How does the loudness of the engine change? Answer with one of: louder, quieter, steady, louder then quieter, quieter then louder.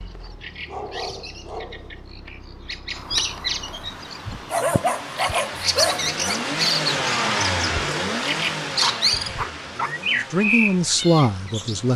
louder then quieter.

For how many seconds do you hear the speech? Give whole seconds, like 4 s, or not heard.
2 s.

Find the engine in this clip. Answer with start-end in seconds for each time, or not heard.
0.0-11.9.